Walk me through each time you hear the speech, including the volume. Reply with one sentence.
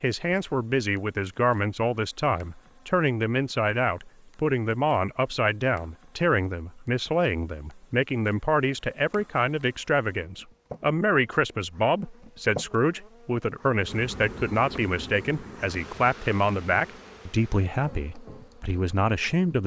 You can hear the speech from 0.0 to 19.6 s, at a steady volume.